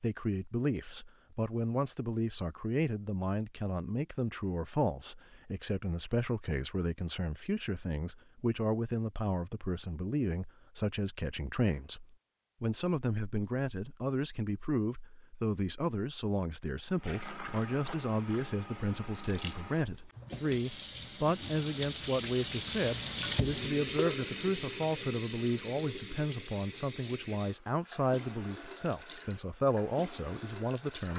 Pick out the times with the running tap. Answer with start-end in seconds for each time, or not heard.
16.9-31.1.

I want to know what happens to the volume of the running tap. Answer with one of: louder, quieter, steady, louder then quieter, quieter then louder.
louder then quieter.